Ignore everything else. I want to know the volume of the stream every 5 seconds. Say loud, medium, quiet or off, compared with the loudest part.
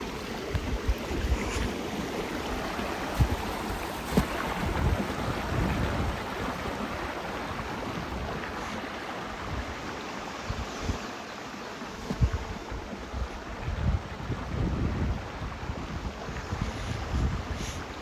loud, loud, medium, medium.